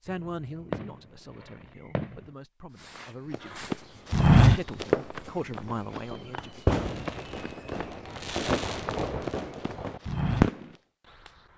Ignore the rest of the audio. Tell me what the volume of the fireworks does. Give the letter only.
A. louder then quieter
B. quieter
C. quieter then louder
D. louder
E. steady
D.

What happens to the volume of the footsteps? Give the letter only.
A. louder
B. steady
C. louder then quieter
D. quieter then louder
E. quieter
D.